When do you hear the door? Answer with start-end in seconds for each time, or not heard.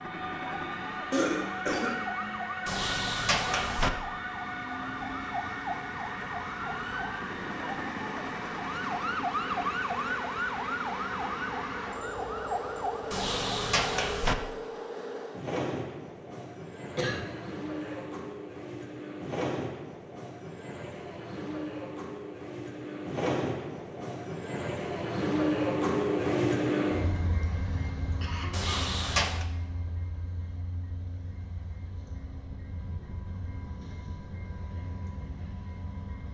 2.6-3.9, 13.1-14.3, 28.5-29.4.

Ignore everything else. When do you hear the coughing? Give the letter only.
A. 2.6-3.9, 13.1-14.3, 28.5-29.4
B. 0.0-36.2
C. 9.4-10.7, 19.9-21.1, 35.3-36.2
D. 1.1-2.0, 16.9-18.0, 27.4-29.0
D.